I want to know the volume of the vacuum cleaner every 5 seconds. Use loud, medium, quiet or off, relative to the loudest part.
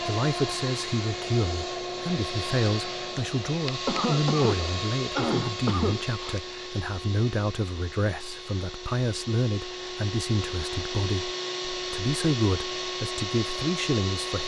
loud, medium, loud.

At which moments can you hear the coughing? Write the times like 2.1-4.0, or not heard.
3.9-6.3.